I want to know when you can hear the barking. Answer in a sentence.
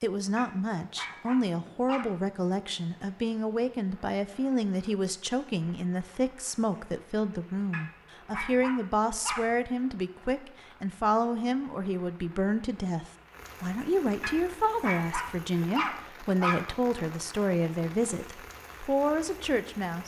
The barking can be heard from 0.3 to 2.1 s, from 7.7 to 9.4 s and from 14.2 to 16.6 s.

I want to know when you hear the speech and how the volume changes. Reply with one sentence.
The speech can be heard from 0.0 to 20.0 s, at a steady volume.